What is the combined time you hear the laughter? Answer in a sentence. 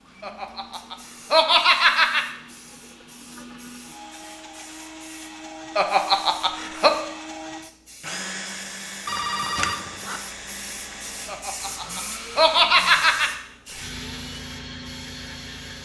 The laughter can be heard for 5 seconds in total.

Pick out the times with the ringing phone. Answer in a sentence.
You can hear the ringing phone from 9.1 to 10.2 s.